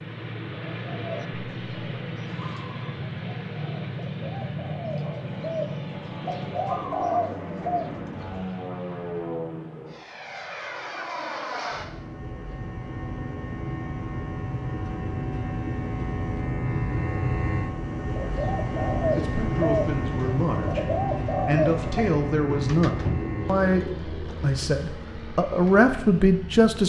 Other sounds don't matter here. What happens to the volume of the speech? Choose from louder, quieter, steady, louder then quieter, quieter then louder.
louder.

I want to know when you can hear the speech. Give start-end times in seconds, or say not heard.
19.1-26.8.